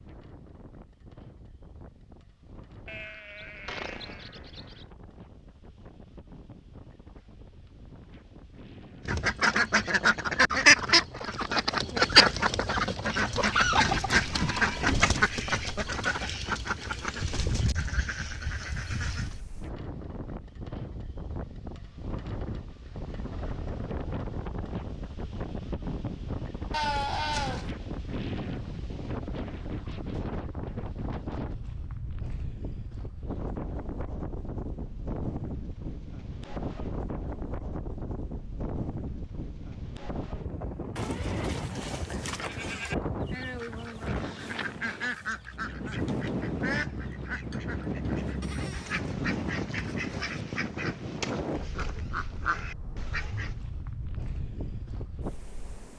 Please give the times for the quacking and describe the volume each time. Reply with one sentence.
The quacking can be heard from 9.1 to 19.4 s, getting quieter; and from 43.2 to 53.5 s, at a steady volume.